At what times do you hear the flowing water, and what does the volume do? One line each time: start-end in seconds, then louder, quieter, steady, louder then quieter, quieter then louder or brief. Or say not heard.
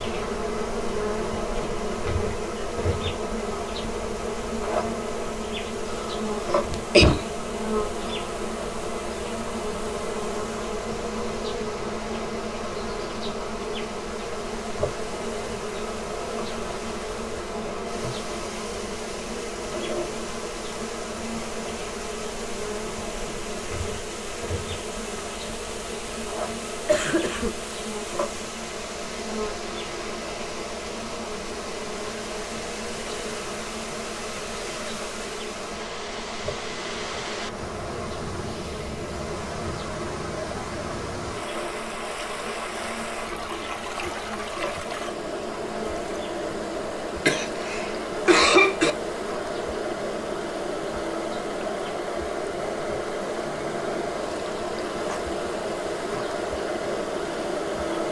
0.0-58.0 louder.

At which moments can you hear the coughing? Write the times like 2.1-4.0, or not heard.
6.0-7.2, 26.9-27.6, 47.2-48.9.